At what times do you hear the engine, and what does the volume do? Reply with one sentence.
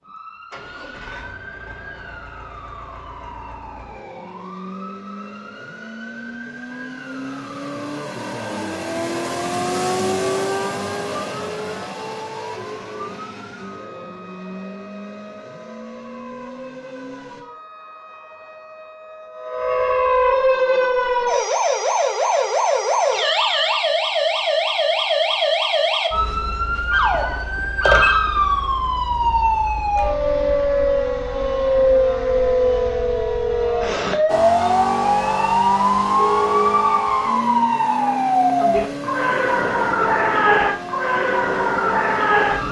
The engine can be heard from 0.0 to 17.4 s, getting louder then quieter; and from 34.2 to 42.6 s, getting quieter.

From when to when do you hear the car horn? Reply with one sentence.
The car horn can be heard from 36.1 to 36.9 s.